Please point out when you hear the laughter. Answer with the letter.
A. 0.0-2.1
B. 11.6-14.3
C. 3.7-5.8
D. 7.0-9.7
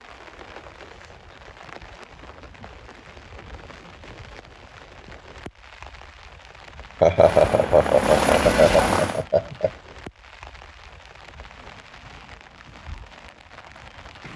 D.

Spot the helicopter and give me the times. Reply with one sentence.
You can hear the helicopter from 7.2 to 9.2 s.